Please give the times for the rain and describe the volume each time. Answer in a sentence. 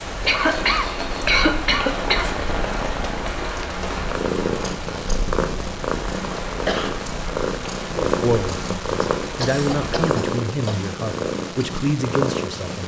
You can hear the rain from 0.0 to 10.1 s, getting quieter.